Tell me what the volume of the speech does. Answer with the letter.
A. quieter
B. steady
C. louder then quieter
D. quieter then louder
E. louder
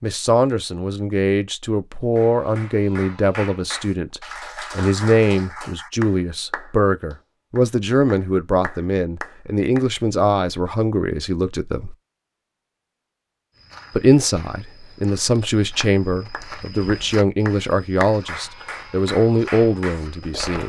B.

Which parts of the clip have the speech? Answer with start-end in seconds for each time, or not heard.
0.0-11.9, 13.9-20.6.